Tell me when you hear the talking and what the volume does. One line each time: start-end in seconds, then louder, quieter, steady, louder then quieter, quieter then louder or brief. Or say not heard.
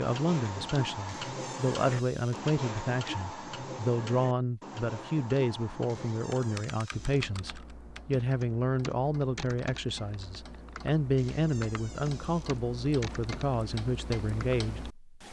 0.0-15.2 steady.